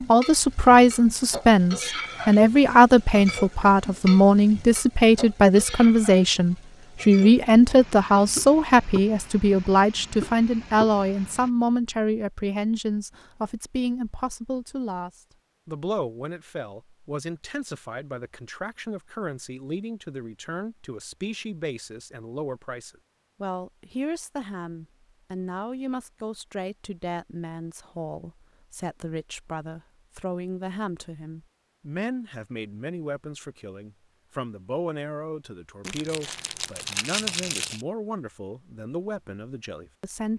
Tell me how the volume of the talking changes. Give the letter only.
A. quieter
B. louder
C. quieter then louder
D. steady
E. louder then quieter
A.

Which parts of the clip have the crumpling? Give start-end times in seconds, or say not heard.
35.9-37.9.